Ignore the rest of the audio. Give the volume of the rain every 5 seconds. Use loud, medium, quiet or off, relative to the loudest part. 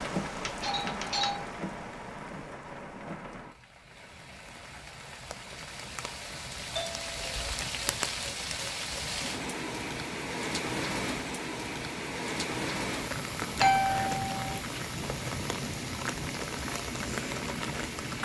medium, loud, loud, loud.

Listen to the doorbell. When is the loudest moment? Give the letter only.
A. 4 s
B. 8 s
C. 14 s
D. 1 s
C.